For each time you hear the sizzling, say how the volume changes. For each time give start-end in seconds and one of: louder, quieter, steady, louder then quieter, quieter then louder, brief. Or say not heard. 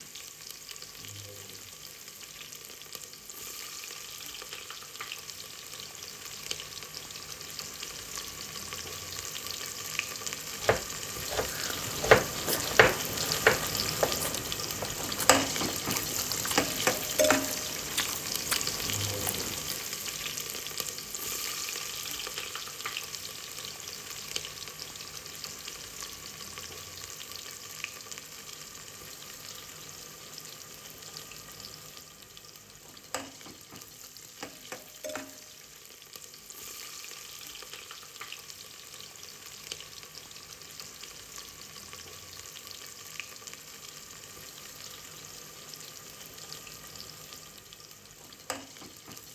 0.0-49.3 louder then quieter.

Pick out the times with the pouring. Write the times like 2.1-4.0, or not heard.
not heard.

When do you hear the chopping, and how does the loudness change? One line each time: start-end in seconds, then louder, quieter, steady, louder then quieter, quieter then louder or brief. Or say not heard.
10.6-15.6 louder then quieter.